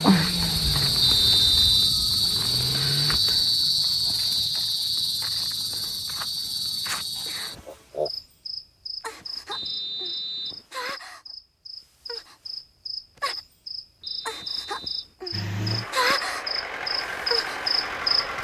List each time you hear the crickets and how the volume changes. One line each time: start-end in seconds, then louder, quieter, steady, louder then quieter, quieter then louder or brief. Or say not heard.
0.0-18.4 quieter then louder.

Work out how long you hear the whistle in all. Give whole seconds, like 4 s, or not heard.
3 s.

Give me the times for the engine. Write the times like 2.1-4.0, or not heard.
0.0-3.2, 15.3-18.4.